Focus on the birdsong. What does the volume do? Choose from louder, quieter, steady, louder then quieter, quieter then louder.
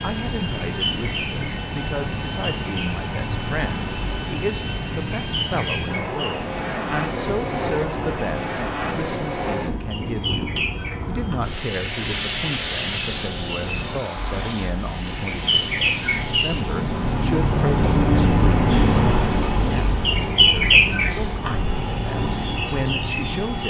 louder.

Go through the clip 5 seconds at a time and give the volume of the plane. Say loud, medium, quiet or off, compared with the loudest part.
loud, loud, loud, medium, medium.